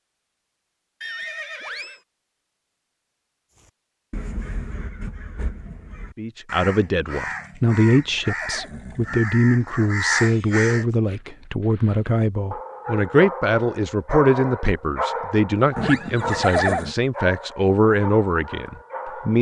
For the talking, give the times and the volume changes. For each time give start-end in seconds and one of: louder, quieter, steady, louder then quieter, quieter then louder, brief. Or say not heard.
6.2-19.3 steady.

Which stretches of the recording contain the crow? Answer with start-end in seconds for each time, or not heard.
3.5-10.8.